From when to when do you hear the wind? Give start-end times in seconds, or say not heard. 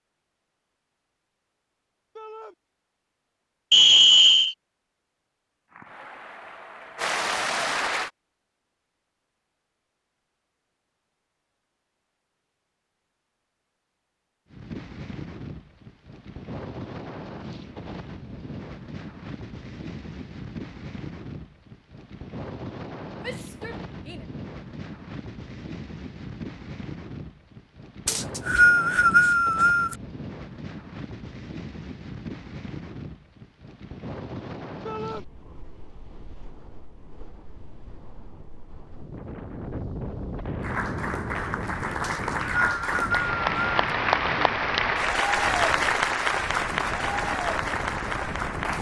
14.5-48.7.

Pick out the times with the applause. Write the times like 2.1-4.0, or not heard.
5.7-8.1, 40.6-48.7.